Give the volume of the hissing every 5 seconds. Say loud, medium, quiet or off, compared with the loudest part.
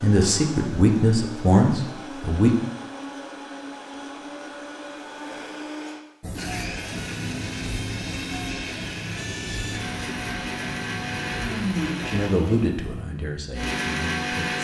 off, loud, loud.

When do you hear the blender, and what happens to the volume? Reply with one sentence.
The blender can be heard from 0.0 to 14.5 s, getting louder.